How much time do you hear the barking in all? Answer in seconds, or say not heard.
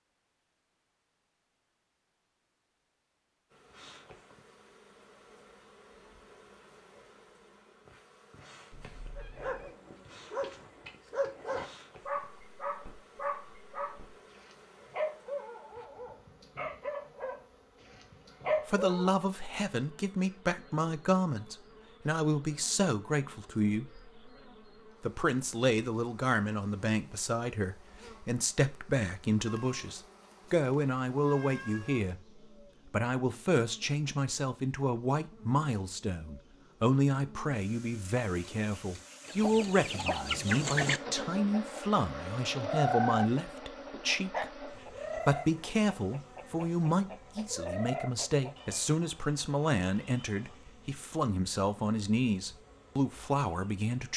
10 s.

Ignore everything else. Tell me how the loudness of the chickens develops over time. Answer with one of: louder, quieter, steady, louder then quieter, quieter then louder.
quieter.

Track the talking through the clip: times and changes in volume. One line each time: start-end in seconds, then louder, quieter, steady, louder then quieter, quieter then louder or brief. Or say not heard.
18.6-24.1 steady
25.0-54.1 steady.